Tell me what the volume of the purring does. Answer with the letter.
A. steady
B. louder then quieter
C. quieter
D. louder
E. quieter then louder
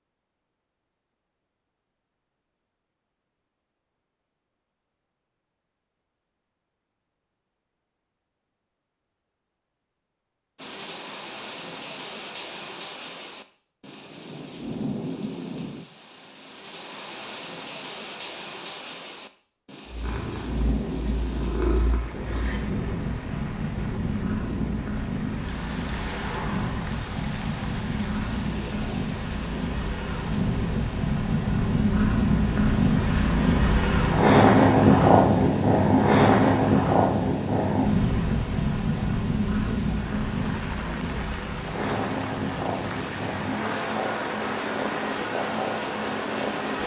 B.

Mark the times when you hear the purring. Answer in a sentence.
You can hear the purring from 19.9 to 46.8 s.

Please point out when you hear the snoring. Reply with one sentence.
The snoring can't be heard in this clip.